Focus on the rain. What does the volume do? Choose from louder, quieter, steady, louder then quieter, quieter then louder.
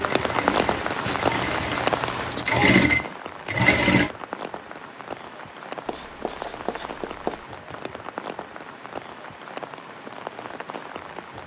quieter.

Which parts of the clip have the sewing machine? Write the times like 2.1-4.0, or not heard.
0.1-4.1.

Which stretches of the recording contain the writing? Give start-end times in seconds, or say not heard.
1.1-3.0, 5.8-7.5.